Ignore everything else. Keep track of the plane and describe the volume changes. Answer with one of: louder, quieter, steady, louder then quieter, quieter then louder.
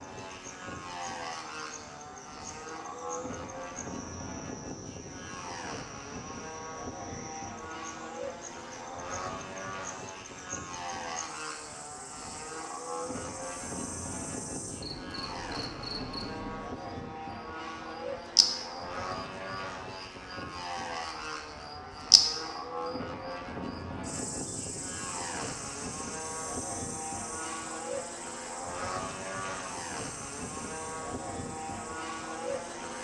steady.